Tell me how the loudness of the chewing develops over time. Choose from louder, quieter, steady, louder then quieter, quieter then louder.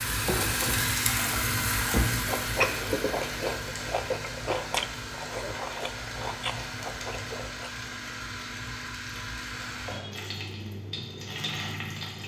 quieter.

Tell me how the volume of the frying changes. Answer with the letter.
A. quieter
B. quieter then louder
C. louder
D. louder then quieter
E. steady
A.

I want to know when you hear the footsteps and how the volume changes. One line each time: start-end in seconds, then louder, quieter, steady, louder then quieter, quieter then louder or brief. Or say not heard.
not heard.